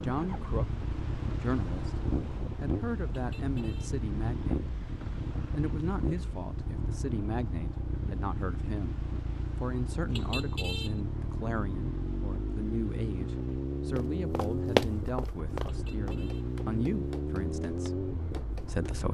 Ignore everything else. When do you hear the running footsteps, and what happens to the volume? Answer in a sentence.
You can hear the running footsteps from 13.9 to 18.9 s, getting quieter.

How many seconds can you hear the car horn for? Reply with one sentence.
The car horn can be heard for 3 seconds in total.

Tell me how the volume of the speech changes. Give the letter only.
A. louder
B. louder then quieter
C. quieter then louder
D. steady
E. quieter
D.